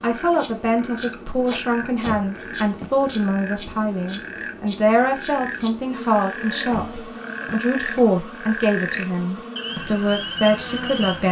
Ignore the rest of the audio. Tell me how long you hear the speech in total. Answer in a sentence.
You can hear the speech for 11 seconds altogether.